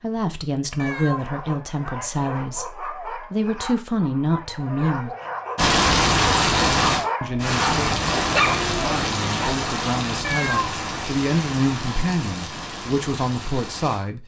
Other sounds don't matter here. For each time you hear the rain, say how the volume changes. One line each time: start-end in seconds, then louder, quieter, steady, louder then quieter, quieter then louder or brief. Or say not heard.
5.5-14.1 quieter.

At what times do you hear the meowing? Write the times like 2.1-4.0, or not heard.
0.8-1.3, 10.2-10.8.